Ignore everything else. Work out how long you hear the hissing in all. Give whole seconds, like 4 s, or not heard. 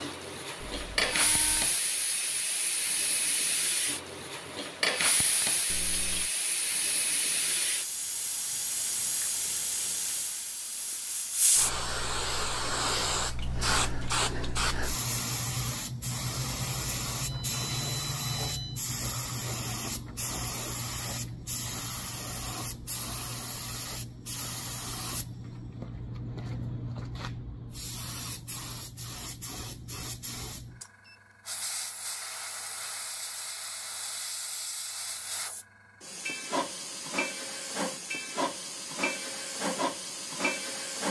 41 s.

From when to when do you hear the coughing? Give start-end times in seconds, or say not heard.
5.7-6.3.